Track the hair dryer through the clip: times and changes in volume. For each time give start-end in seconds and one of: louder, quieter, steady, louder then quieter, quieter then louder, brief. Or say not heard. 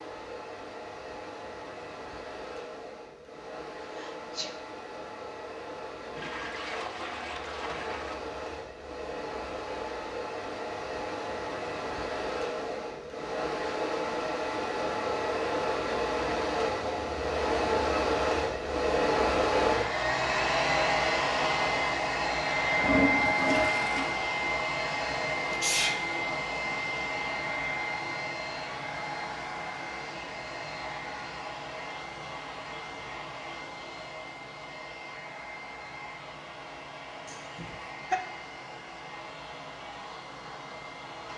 0.0-41.3 louder then quieter.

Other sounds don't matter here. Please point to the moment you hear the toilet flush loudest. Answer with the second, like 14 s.
23 s.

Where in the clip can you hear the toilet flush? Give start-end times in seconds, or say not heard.
6.2-8.2, 22.8-24.1.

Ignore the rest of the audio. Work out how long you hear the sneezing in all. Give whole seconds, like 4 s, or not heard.
2 s.